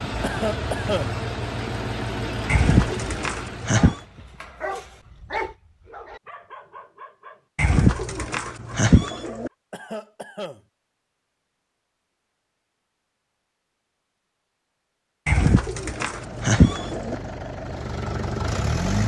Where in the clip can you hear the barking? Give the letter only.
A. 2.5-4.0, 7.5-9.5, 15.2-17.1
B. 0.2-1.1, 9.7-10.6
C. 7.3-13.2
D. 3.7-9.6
D.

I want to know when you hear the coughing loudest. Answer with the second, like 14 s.
1 s.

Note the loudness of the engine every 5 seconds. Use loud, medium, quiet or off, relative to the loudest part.
loud, off, off, loud.